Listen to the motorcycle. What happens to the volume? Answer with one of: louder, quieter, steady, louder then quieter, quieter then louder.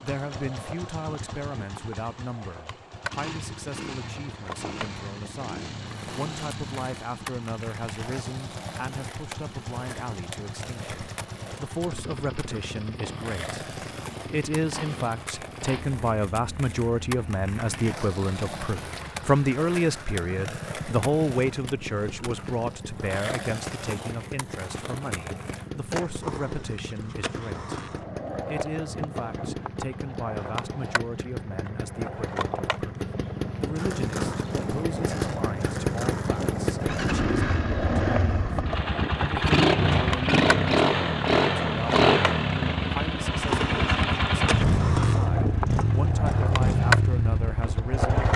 louder.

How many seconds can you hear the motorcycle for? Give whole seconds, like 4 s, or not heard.
48 s.